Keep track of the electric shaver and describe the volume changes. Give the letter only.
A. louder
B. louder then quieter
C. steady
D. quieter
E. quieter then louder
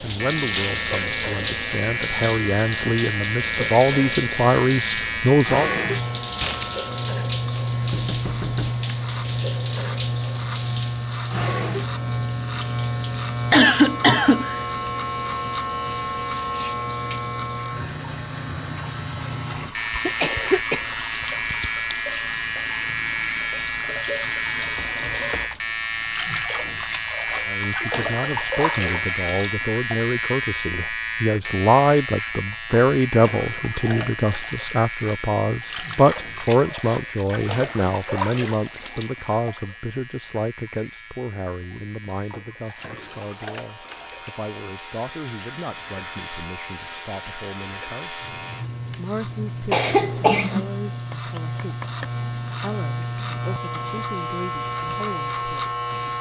E.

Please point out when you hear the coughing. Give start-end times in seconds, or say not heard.
13.5-14.6, 19.6-20.9, 49.7-50.7.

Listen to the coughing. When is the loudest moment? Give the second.
14 s.